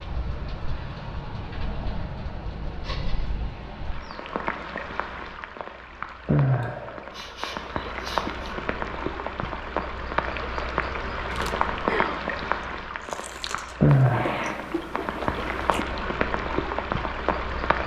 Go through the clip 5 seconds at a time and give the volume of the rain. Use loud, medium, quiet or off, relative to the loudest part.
medium, loud, loud, loud.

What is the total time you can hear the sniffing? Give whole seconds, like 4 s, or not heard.
3 s.